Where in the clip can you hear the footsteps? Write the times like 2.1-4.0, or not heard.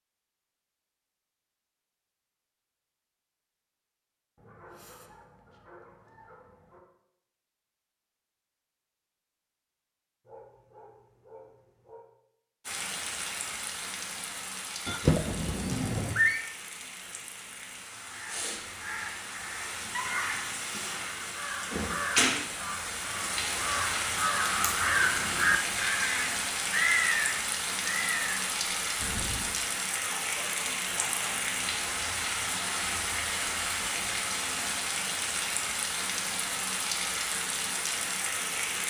not heard.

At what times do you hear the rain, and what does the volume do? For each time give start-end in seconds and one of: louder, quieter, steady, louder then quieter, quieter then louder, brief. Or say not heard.
12.7-38.8 louder.